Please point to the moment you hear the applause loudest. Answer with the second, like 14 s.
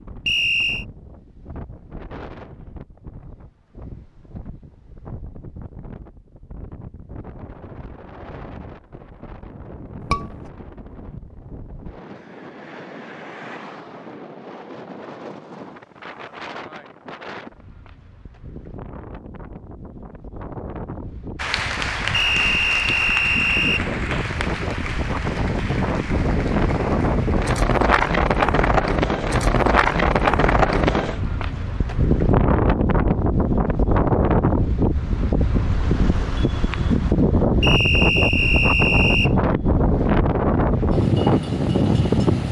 22 s.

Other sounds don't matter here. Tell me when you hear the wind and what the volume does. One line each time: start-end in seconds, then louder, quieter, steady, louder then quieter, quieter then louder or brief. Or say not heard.
0.0-42.4 louder.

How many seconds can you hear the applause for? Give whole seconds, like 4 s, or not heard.
6 s.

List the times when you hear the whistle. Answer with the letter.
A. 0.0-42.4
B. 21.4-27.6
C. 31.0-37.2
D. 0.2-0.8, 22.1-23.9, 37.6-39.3
D.